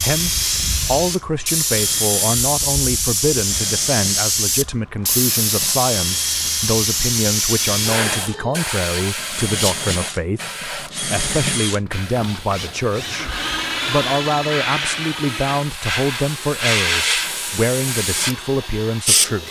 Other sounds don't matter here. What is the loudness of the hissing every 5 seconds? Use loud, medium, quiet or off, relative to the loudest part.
loud, loud, medium, loud.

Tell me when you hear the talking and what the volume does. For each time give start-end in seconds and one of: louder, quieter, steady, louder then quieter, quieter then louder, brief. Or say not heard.
0.0-19.4 steady.